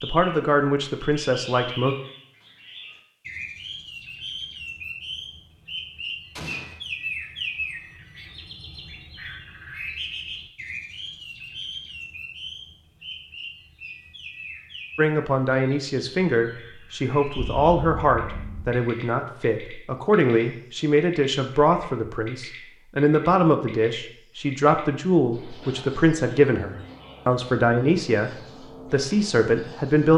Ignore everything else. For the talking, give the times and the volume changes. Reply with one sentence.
You can hear the talking briefly from 0.0 to 1.9 s; and from 14.9 to 30.1 s, at a steady volume.